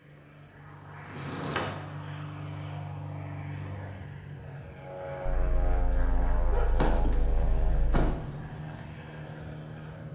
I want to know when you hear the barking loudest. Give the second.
7 s.